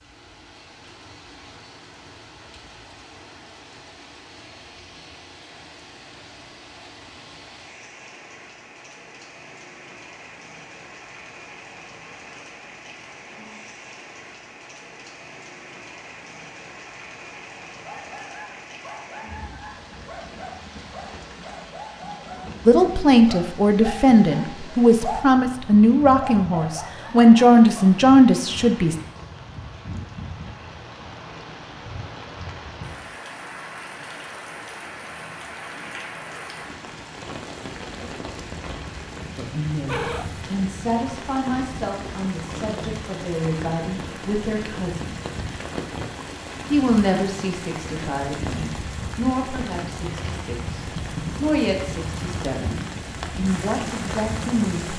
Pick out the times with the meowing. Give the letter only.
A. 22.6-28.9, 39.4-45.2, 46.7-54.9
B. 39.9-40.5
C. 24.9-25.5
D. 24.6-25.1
B.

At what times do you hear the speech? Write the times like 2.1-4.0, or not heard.
22.6-28.9, 39.4-45.2, 46.7-54.9.